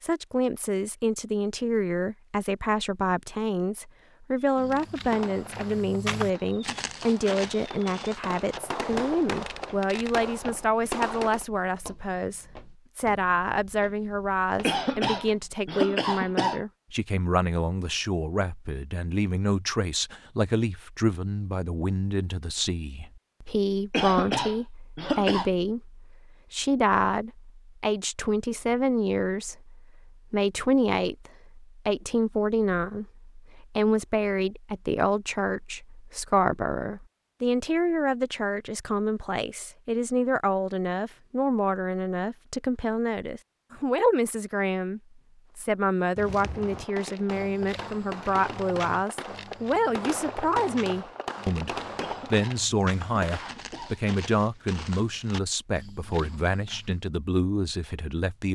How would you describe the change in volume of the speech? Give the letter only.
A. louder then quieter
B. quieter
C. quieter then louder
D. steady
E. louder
D.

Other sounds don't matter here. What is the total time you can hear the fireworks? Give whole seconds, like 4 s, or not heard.
14 s.